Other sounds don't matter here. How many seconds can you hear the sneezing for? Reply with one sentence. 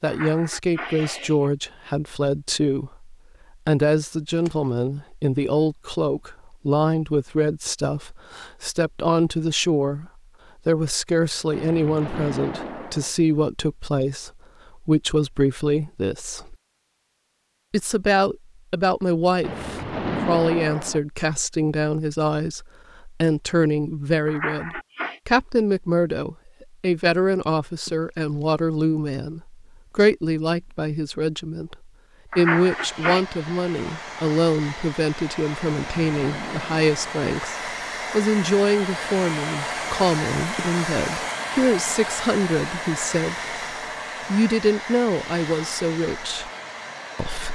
You can hear the sneezing for 3 seconds altogether.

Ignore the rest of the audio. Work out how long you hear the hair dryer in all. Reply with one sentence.
The hair dryer can be heard for 15 seconds in total.